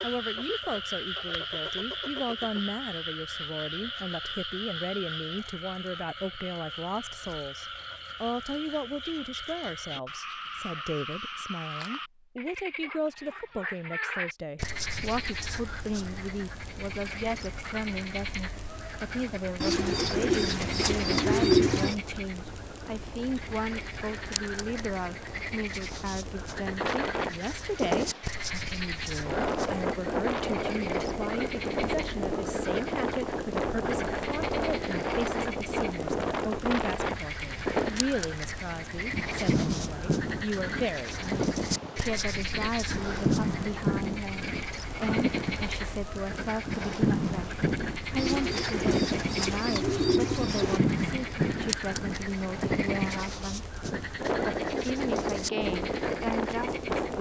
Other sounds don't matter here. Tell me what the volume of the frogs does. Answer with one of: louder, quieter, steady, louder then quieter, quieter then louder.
steady.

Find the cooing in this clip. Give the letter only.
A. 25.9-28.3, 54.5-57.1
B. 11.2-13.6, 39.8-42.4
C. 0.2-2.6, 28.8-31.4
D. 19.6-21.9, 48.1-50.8
D.